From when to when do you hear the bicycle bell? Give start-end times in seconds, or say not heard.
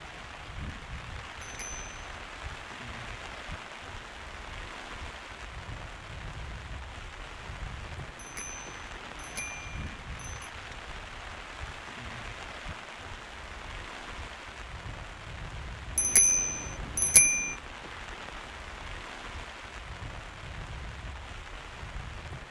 1.4-2.1, 8.2-10.4, 15.9-17.6.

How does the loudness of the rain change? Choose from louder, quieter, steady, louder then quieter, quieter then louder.
steady.